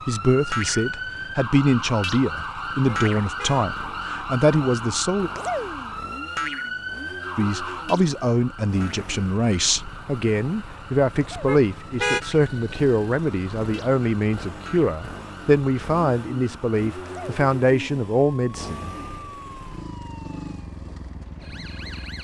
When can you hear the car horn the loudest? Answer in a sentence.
The volume of the car horn peaks at 12 seconds.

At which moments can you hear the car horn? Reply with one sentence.
The car horn can be heard from 2.9 to 3.6 s and from 11.4 to 12.2 s.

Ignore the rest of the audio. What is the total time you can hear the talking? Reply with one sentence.
You can hear the talking for 17 seconds altogether.